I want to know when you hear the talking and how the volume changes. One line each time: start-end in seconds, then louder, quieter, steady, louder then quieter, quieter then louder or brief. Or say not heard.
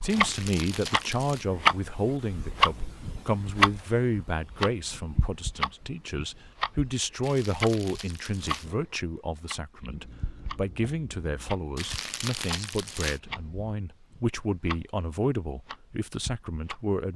0.0-17.1 steady.